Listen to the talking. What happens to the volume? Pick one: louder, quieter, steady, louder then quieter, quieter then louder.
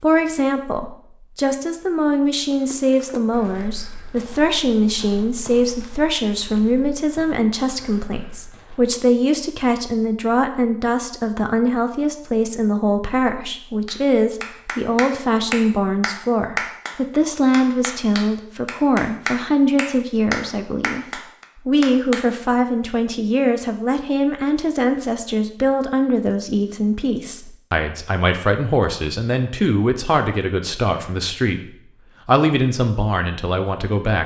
steady.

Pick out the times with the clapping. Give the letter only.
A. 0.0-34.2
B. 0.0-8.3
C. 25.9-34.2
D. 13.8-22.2
D.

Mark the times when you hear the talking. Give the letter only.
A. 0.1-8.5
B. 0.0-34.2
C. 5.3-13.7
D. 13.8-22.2
B.